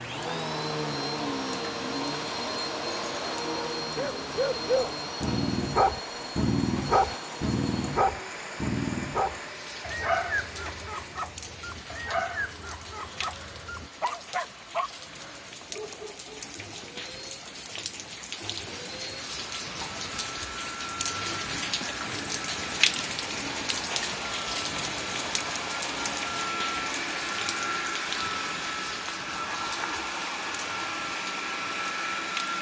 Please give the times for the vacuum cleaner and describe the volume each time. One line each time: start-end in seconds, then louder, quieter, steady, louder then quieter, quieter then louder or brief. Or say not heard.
0.0-32.5 quieter then louder.